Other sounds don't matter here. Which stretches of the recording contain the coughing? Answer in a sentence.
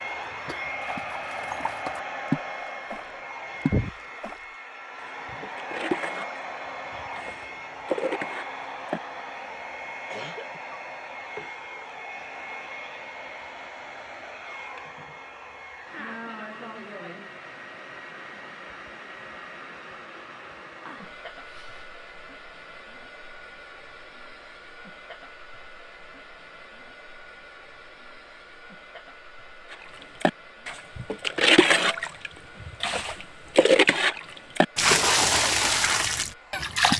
You can hear the coughing from 10.1 to 10.8 s and from 20.8 to 21.9 s.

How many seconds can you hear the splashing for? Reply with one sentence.
You can hear the splashing for 16 seconds altogether.